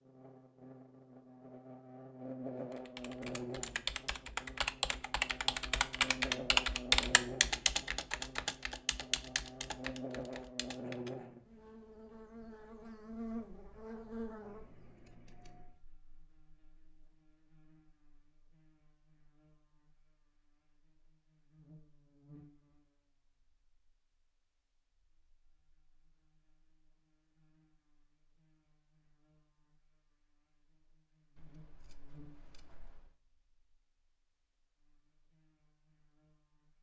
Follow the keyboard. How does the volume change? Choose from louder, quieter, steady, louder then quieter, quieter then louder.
louder then quieter.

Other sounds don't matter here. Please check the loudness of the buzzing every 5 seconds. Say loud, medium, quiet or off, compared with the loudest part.
loud, loud, loud, quiet, quiet, quiet, quiet, quiet.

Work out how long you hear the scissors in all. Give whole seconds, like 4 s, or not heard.
3 s.